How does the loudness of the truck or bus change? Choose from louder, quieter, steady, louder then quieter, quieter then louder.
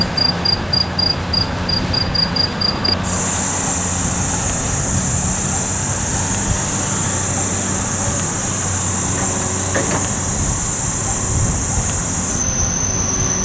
steady.